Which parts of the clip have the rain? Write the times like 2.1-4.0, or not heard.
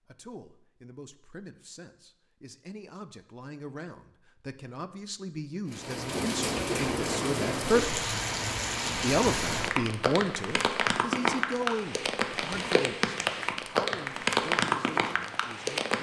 5.7-15.9.